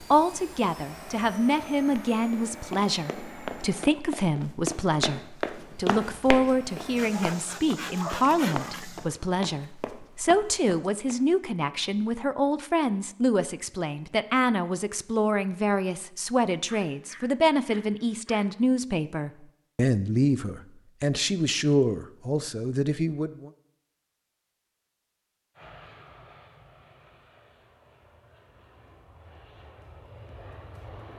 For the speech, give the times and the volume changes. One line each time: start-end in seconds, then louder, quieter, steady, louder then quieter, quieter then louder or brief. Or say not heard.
0.0-23.5 steady.